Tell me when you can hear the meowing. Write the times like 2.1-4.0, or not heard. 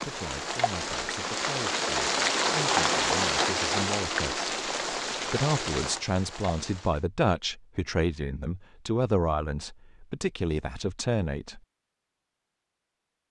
not heard.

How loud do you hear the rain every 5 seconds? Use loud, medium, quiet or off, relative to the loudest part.
loud, medium, off.